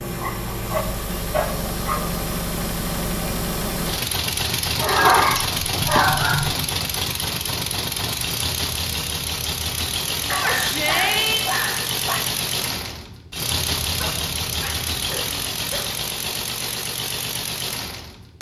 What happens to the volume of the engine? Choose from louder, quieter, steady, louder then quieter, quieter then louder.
steady.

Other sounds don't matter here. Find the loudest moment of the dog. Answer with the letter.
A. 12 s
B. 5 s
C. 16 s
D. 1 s
B.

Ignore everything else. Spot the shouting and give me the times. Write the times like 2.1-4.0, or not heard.
10.3-11.5.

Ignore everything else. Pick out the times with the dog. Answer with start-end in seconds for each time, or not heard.
0.2-2.1, 4.8-6.7, 10.2-12.2, 13.9-15.9.